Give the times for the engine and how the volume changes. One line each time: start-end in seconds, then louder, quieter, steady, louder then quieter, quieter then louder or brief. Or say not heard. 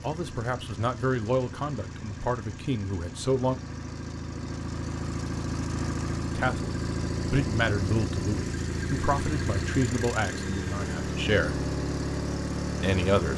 0.0-13.3 louder.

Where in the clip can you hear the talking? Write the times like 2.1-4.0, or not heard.
0.0-3.5, 6.3-11.6, 12.8-13.3.